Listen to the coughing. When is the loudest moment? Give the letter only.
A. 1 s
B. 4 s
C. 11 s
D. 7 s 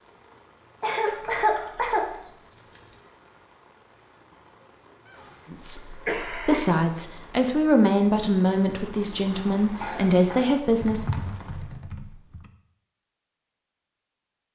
A.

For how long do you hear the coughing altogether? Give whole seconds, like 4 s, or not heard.
3 s.